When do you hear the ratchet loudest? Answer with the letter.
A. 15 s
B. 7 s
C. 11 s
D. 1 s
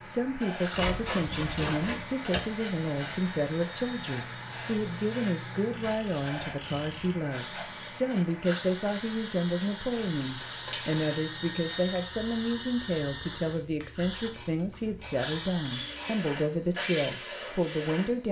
D.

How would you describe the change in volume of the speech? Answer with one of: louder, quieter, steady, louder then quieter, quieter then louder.
steady.